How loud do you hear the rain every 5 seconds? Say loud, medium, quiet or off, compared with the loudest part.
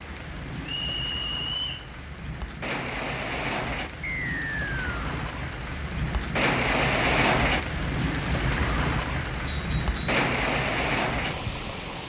medium, loud, loud.